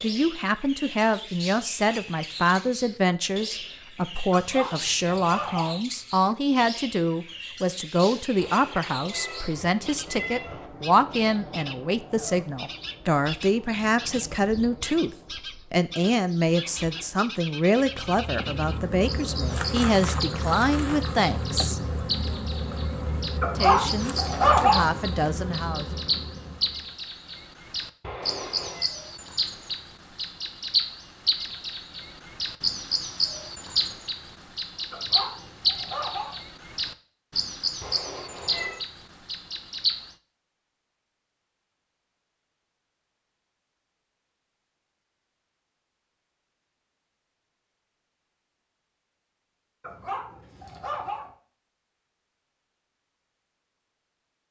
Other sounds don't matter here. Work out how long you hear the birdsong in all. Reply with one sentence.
The birdsong can be heard for 40 seconds in total.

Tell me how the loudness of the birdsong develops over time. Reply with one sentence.
The volume of the birdsong goes up.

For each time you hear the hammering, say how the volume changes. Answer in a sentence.
The hammering can't be heard in this clip.